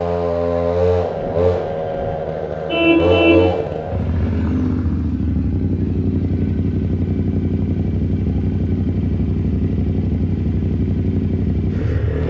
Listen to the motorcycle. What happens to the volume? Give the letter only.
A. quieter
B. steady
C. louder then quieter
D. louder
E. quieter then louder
B.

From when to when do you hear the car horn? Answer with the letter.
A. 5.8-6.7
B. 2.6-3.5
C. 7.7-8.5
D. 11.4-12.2
B.